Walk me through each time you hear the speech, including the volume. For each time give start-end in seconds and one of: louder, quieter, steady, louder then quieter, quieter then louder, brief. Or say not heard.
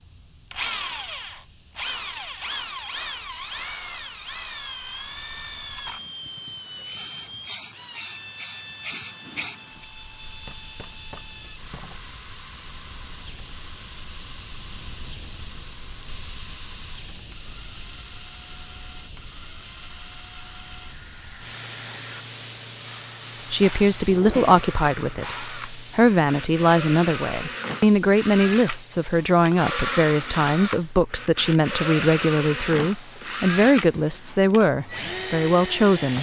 23.5-36.1 steady.